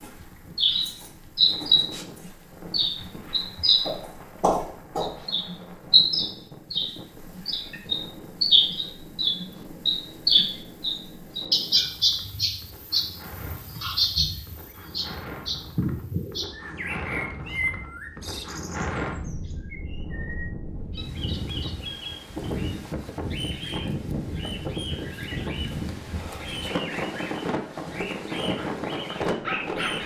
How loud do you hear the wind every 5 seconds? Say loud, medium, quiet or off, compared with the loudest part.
quiet, quiet, quiet, medium, loud, loud.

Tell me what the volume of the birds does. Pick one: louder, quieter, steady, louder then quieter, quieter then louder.
quieter.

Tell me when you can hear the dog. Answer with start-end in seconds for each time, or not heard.
28.6-30.0.